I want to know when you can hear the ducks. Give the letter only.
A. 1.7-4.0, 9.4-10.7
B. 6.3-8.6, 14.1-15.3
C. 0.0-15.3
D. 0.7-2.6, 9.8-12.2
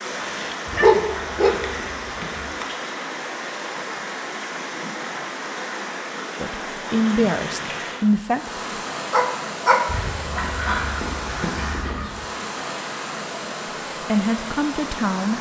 D.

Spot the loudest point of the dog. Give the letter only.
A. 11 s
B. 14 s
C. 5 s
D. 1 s
D.